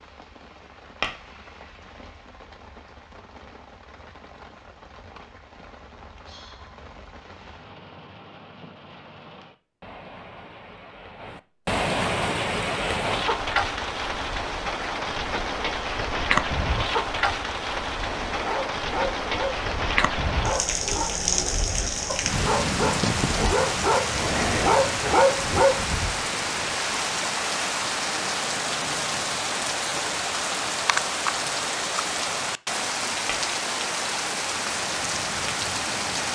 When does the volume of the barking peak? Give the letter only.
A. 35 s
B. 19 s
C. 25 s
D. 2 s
C.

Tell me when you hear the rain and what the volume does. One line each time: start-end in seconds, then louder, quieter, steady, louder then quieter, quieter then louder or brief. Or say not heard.
0.0-36.2 louder.